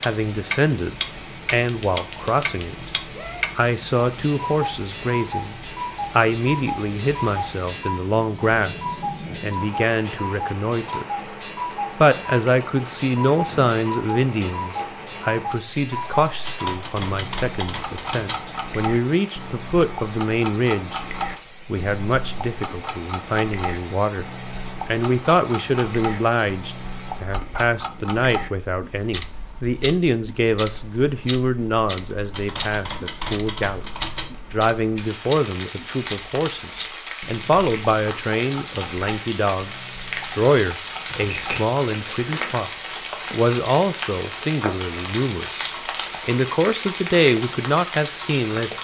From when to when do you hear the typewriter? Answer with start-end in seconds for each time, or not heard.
1.6-3.5, 16.4-18.4, 32.3-34.3, 41.0-41.6.